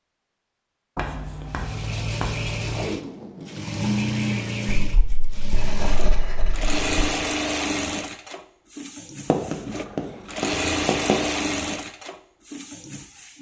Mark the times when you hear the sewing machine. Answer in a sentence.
You can hear the sewing machine from 1.4 to 13.3 s.